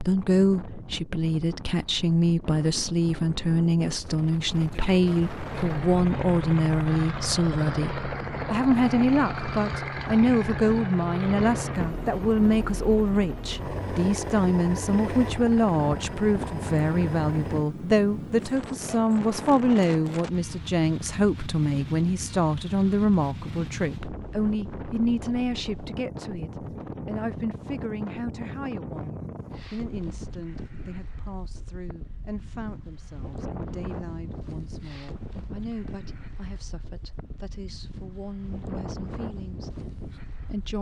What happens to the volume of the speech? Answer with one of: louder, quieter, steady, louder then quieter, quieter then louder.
quieter.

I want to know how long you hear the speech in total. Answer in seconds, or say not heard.
41 s.